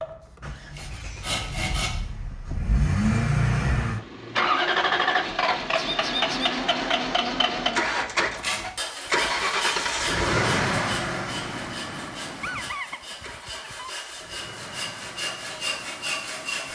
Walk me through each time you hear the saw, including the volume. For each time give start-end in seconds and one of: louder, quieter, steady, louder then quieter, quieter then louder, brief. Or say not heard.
0.0-1.9 brief
8.3-16.7 quieter then louder.